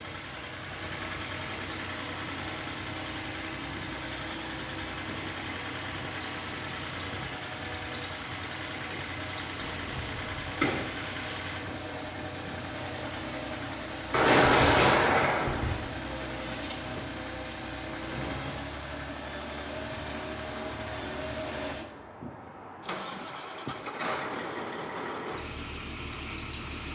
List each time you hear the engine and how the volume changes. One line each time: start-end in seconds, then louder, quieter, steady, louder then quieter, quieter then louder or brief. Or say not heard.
0.0-26.9 steady.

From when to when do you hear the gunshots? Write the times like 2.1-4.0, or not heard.
9.6-10.9, 14.1-15.8.